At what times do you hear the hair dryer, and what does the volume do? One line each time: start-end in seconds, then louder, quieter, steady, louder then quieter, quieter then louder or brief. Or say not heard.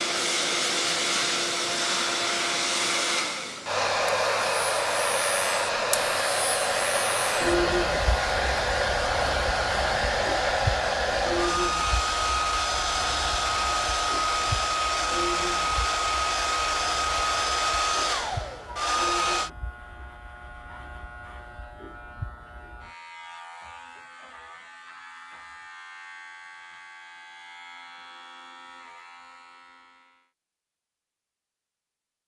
0.0-19.5 steady.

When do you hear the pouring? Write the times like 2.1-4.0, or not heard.
not heard.